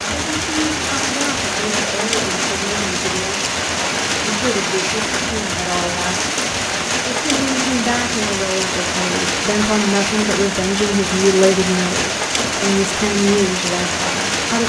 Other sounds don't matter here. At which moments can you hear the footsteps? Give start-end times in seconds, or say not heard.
not heard.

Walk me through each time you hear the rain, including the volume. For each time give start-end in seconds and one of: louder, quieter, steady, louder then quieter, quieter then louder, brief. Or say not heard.
0.0-14.6 steady.